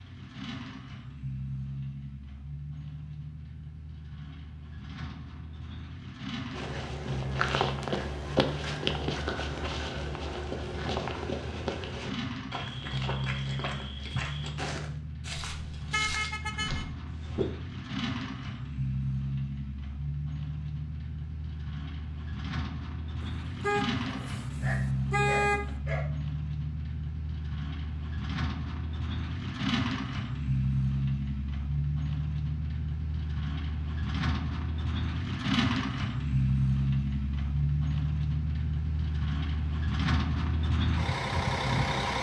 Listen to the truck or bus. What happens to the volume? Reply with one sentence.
The loudness of the truck or bus goes up.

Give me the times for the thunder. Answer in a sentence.
The thunder can't be heard in this clip.